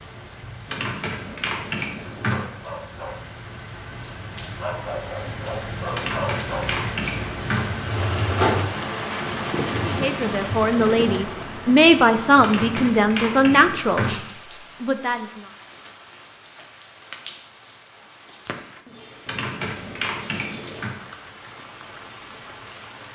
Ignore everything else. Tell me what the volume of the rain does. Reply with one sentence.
The loudness of the rain goes up, then down.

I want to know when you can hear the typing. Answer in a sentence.
You can hear the typing from 0.7 to 2.5 s, from 5.9 to 7.7 s, from 12.4 to 14.2 s and from 19.2 to 20.9 s.